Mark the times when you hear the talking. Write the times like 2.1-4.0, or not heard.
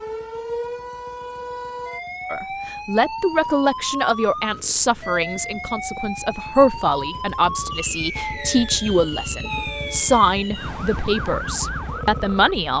2.3-12.7.